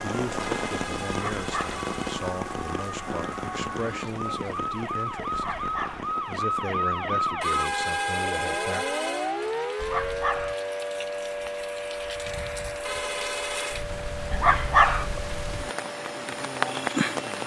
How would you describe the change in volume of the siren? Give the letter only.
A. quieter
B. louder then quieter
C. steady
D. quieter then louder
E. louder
B.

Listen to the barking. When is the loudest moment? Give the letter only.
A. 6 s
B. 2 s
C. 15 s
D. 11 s
C.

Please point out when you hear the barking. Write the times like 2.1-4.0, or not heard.
1.1-1.8, 5.3-6.1, 9.8-10.6, 14.3-15.1.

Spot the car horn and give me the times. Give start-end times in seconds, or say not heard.
0.4-2.2, 7.4-9.3, 12.8-13.8.